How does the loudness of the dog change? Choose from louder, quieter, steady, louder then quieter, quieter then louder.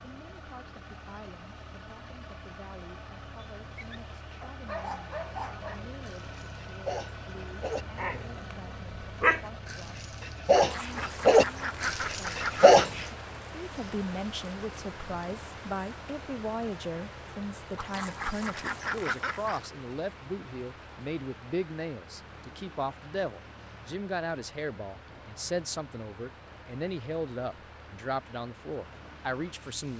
louder.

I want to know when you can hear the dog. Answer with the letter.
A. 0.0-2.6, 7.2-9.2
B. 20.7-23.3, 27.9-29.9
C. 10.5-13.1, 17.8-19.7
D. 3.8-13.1
D.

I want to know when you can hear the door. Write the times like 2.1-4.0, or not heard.
not heard.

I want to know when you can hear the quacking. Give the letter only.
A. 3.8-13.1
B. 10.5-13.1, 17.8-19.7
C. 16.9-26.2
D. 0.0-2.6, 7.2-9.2
B.